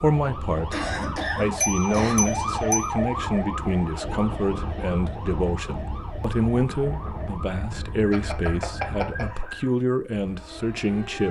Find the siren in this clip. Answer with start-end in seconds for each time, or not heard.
0.0-11.2.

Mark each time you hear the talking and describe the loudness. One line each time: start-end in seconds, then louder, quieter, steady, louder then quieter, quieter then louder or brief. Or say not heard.
0.0-11.2 steady.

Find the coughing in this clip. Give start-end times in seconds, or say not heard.
0.7-2.1.